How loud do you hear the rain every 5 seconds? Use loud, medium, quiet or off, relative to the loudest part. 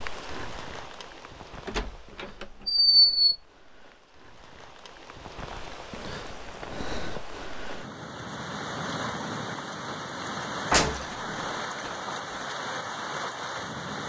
medium, loud, loud.